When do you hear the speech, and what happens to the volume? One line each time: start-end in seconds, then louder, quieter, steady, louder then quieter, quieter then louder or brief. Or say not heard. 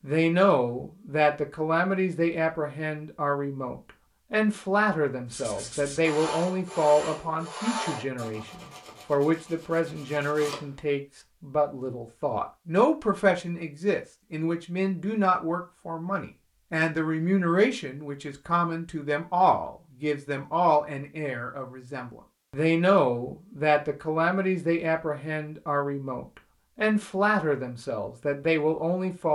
0.0-29.3 steady.